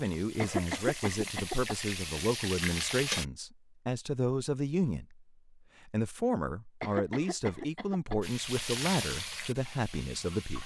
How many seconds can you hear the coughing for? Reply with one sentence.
You can hear the coughing for 3 seconds altogether.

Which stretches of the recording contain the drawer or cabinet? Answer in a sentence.
The drawer or cabinet can't be heard in this clip.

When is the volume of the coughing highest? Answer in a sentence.
The loudest moment of the coughing is at 1 second.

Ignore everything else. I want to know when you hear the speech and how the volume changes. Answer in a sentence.
The speech can be heard from 0.0 to 10.6 s, at a steady volume.